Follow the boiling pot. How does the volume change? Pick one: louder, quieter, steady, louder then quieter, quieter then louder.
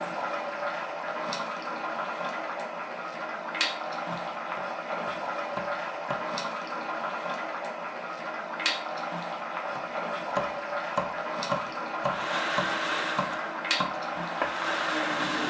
steady.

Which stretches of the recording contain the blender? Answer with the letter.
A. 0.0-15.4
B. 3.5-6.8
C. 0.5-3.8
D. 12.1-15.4
D.